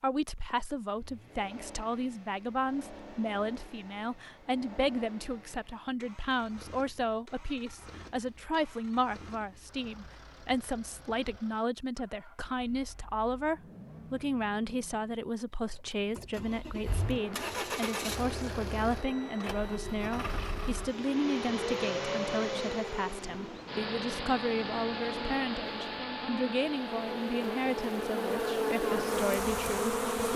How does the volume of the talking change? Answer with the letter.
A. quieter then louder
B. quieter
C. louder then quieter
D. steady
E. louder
D.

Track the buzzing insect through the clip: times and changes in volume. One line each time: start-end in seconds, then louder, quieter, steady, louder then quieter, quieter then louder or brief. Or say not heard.
16.9-30.3 louder.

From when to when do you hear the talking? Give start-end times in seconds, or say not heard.
0.0-30.3.